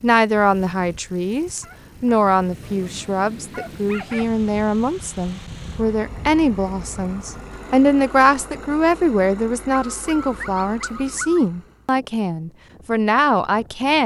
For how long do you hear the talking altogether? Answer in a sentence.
You can hear the talking for 14 seconds altogether.